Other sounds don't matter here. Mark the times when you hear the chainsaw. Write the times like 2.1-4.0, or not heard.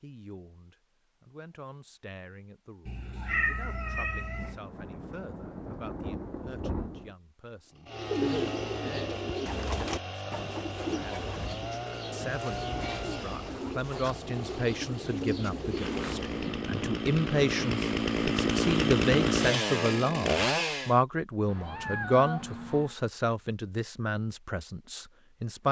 7.7-20.9.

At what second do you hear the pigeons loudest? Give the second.
8 s.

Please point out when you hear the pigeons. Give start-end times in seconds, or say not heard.
7.9-16.6.